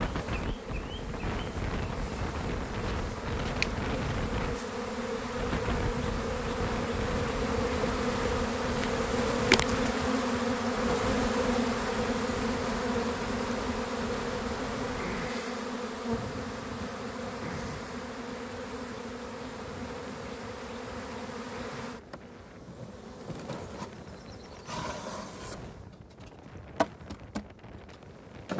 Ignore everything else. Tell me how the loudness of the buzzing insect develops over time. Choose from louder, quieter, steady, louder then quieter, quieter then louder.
louder then quieter.